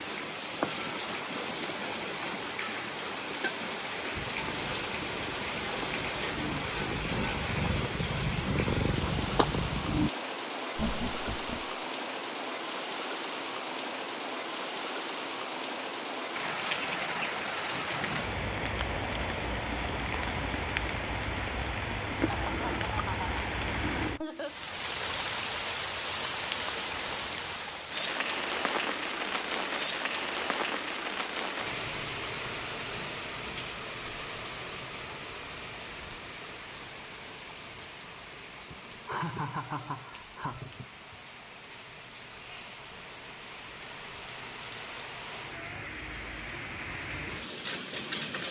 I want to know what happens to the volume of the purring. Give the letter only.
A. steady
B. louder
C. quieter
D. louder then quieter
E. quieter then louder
B.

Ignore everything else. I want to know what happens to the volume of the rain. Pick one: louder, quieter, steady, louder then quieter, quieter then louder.
quieter.